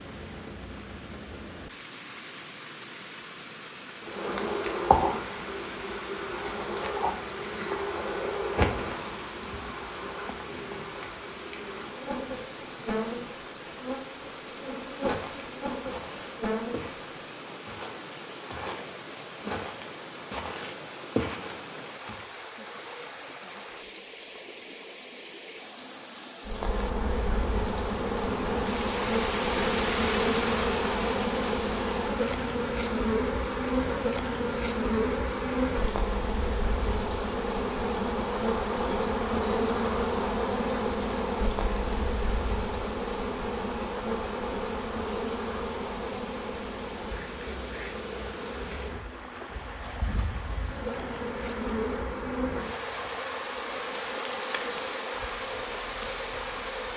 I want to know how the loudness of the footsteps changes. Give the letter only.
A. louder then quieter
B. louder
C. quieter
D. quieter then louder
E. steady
B.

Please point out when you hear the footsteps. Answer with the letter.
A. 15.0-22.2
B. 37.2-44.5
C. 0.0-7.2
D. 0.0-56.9
A.